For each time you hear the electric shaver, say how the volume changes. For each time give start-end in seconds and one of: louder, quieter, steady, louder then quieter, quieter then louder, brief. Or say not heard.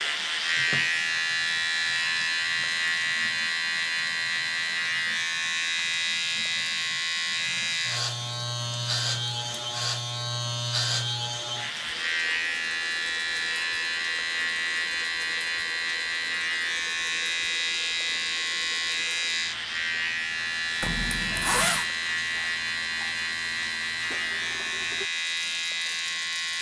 0.0-26.5 steady.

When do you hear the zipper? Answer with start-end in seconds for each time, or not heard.
20.8-21.9.